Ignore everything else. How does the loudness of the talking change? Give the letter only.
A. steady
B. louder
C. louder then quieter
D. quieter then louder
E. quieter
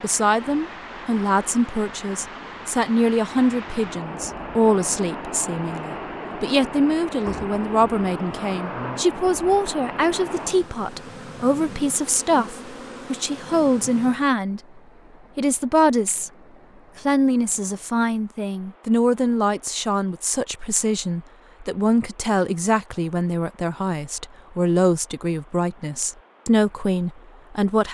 A.